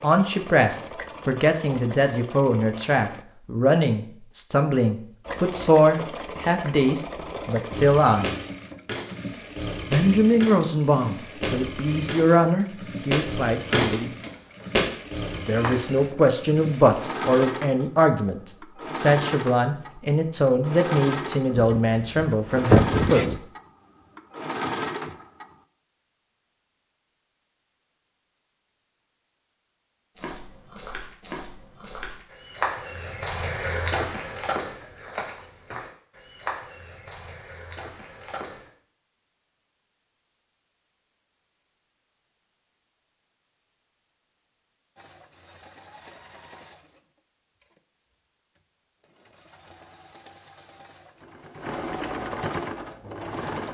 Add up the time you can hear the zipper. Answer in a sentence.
The zipper can be heard for 2 seconds in total.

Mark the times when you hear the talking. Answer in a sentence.
You can hear the talking from 0.0 to 8.3 s, from 9.8 to 14.1 s and from 15.3 to 23.4 s.